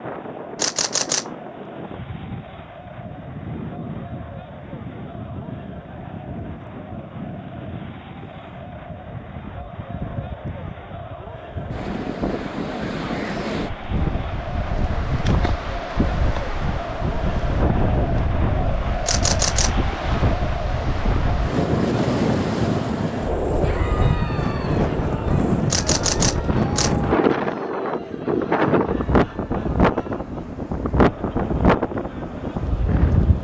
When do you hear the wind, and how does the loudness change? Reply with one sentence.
The wind can be heard from 0.0 to 33.3 s, getting louder.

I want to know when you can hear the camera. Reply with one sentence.
The camera can be heard from 0.6 to 1.2 s, from 19.1 to 19.7 s and from 25.7 to 26.9 s.